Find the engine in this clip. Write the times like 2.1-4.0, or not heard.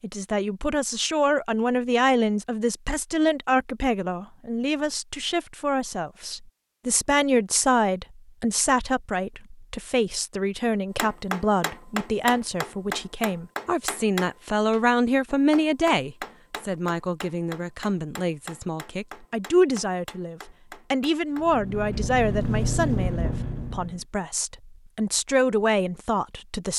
21.4-24.1.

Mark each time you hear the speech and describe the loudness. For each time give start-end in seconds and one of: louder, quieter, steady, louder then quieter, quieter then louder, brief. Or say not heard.
0.0-26.7 steady.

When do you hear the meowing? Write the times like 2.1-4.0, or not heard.
not heard.